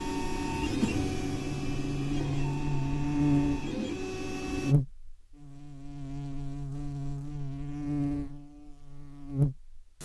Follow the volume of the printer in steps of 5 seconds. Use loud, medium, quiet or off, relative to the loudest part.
loud, off.